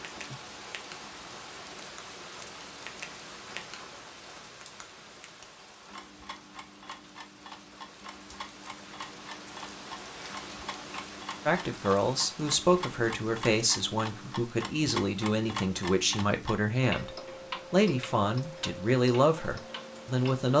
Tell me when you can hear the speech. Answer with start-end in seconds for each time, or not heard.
11.4-17.1, 17.7-20.5.